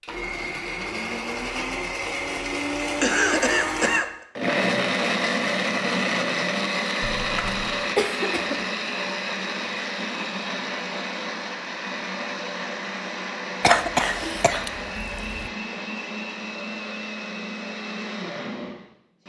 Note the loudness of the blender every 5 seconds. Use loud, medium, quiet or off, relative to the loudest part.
loud, loud, medium, medium.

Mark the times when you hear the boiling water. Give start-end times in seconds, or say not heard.
not heard.